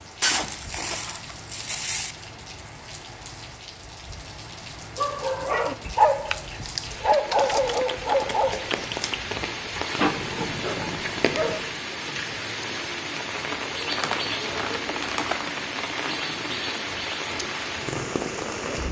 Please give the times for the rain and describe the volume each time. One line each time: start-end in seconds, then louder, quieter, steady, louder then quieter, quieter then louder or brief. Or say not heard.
0.0-18.8 louder.